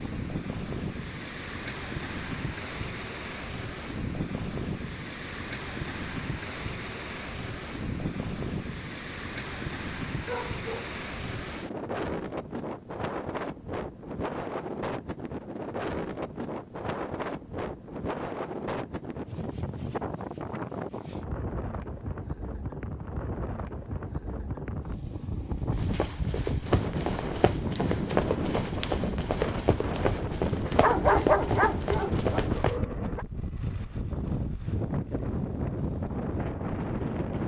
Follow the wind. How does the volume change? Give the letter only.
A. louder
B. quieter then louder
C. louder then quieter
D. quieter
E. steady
E.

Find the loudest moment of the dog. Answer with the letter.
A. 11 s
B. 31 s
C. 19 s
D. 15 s
B.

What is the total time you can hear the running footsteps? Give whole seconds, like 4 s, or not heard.
7 s.